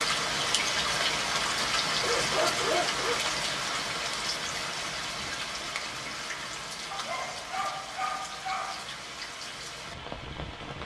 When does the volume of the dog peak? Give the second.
3 s.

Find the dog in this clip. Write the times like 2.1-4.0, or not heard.
2.0-3.2, 6.9-8.8.